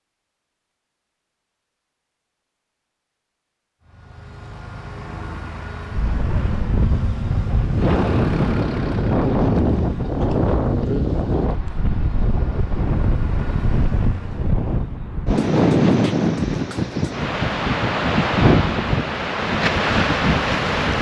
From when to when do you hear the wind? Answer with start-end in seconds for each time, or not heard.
5.9-20.9.